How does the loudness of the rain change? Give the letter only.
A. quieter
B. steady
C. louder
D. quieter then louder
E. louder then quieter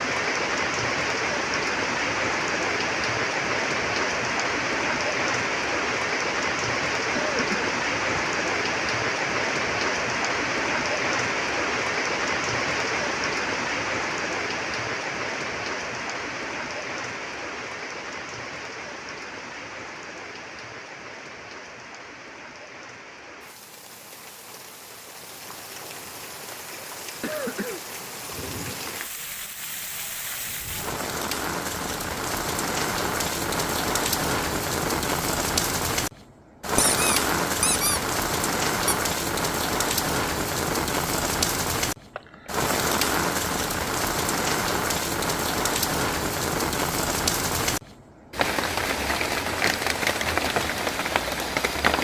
D.